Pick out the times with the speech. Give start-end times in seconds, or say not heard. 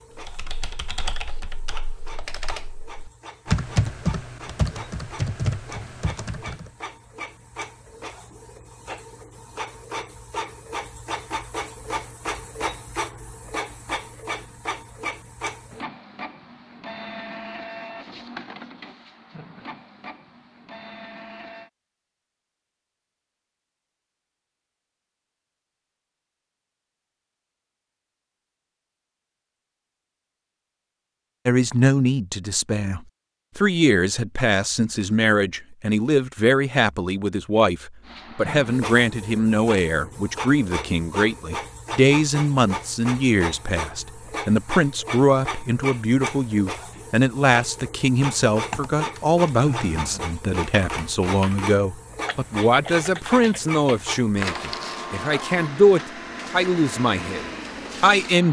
31.4-58.4.